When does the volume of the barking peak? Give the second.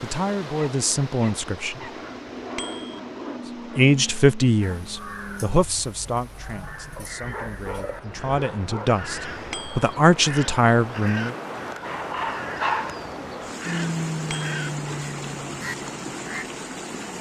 13 s.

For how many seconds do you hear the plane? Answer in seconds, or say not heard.
9 s.